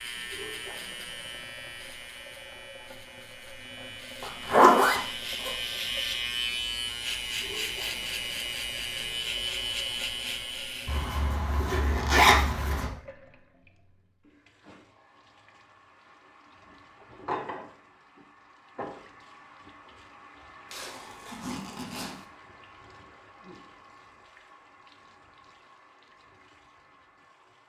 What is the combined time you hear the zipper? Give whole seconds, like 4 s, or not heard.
5 s.